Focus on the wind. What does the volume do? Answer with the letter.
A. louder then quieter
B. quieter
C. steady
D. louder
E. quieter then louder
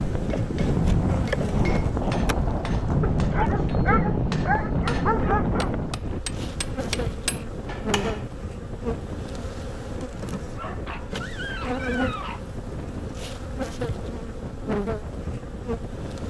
B.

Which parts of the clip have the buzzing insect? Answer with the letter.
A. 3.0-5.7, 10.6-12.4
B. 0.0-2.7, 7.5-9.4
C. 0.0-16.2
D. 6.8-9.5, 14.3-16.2
C.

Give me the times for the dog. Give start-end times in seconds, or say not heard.
3.0-5.7, 10.6-12.4.